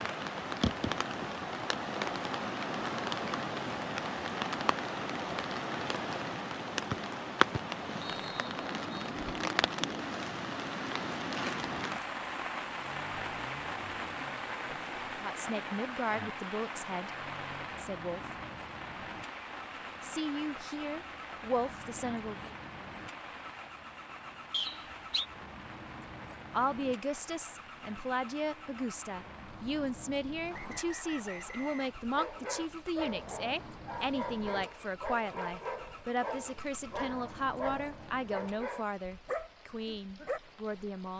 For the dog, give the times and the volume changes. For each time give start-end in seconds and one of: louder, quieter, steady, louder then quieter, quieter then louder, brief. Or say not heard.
32.1-40.4 steady.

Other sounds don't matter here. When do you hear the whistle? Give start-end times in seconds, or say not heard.
6.9-9.1, 24.5-25.2, 30.5-32.0.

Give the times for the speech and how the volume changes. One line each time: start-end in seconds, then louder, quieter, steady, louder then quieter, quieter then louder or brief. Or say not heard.
15.2-17.1 brief
17.8-18.3 brief
20.0-22.6 brief
26.5-41.1 steady.